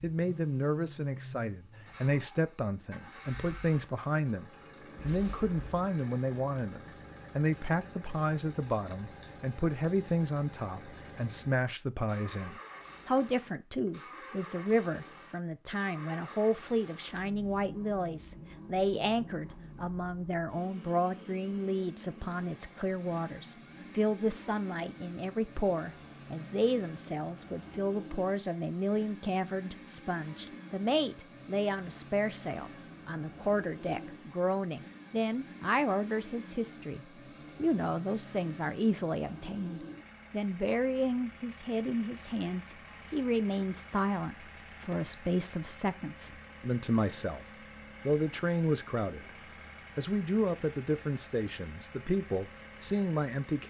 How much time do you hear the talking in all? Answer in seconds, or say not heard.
52 s.